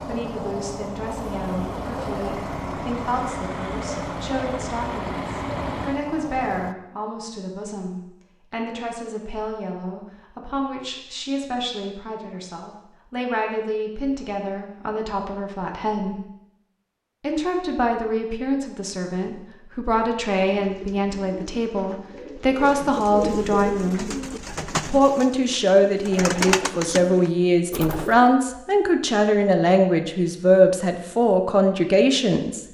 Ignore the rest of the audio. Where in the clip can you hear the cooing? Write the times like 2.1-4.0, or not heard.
20.4-28.3.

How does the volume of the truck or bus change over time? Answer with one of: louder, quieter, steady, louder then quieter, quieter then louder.
steady.